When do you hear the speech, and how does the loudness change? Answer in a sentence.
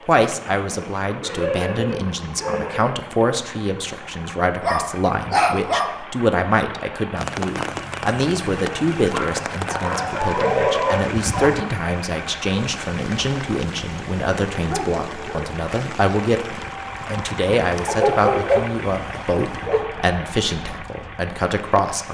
You can hear the speech from 0.1 to 22.0 s, at a steady volume.